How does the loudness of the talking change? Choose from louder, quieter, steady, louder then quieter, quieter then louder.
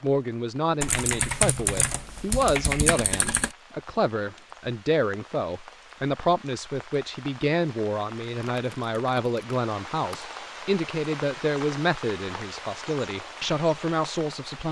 steady.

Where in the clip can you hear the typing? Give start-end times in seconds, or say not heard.
0.8-3.5, 8.4-10.2.